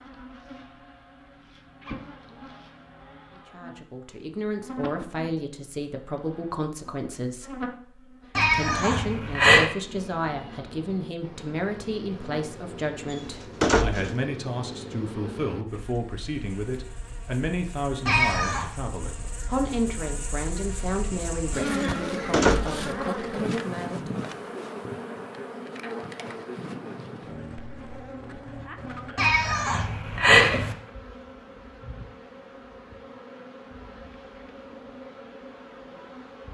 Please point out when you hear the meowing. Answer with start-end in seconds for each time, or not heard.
8.3-9.7, 18.1-18.7, 29.1-30.8.